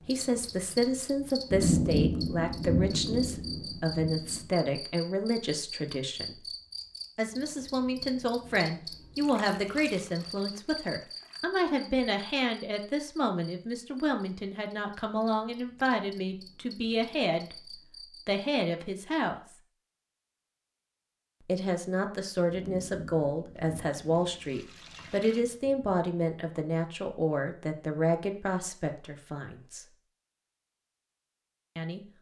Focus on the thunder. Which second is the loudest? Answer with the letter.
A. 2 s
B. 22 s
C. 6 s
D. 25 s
A.